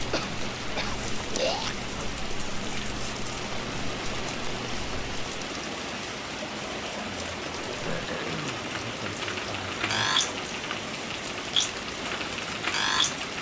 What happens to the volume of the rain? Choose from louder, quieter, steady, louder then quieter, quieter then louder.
steady.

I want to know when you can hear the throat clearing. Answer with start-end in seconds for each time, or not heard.
0.1-1.8, 7.8-8.7.